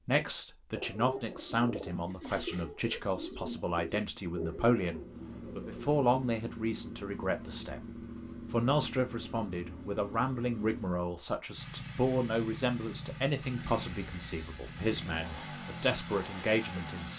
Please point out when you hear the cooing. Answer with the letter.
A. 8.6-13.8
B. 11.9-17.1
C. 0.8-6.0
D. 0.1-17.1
C.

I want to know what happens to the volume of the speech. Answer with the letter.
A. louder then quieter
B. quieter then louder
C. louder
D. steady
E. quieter
D.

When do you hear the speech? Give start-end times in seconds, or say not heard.
0.1-17.1.